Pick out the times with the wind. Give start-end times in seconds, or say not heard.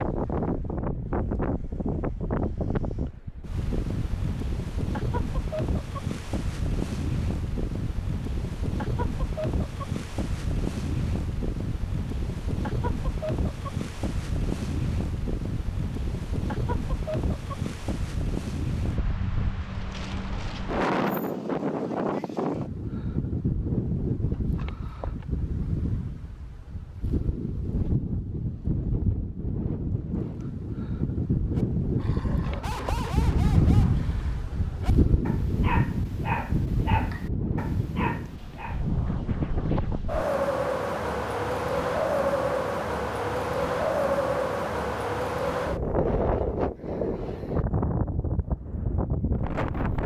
0.0-50.0.